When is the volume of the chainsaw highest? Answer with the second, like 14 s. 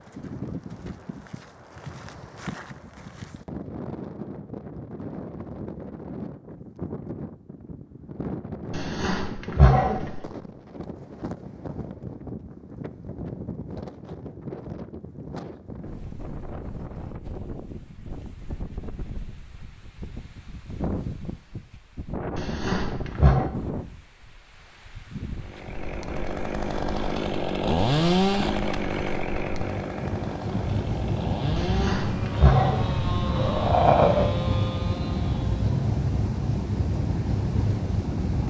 28 s.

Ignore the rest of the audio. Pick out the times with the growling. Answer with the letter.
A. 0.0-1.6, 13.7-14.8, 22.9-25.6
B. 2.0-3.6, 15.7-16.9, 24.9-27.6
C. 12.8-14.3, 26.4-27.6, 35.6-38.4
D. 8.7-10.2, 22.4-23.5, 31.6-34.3
D.